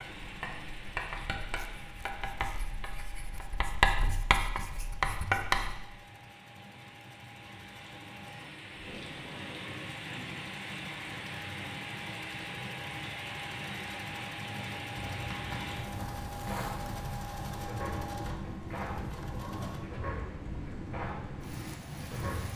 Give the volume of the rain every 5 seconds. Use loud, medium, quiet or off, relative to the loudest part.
medium, medium, loud, loud, loud.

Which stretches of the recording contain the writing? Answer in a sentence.
The writing can be heard from 0.0 to 5.8 s and from 14.9 to 22.5 s.